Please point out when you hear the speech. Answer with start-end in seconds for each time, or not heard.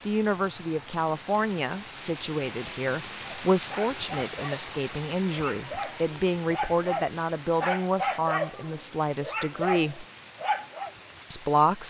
0.1-10.1, 11.3-11.8.